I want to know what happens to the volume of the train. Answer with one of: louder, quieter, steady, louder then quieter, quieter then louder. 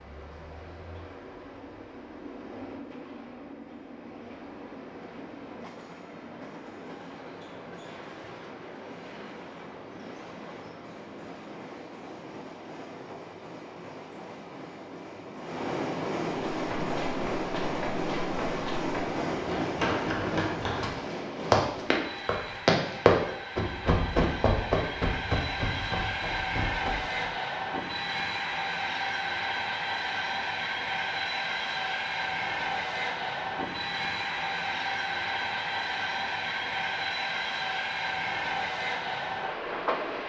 louder.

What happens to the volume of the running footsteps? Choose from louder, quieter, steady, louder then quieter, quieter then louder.
louder then quieter.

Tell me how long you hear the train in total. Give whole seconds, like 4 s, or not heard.
40 s.